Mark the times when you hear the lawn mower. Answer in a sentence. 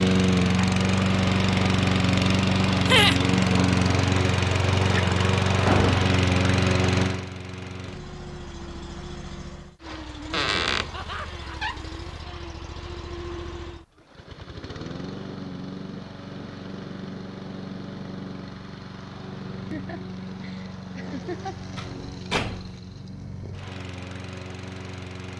You can hear the lawn mower from 0.0 to 25.3 s.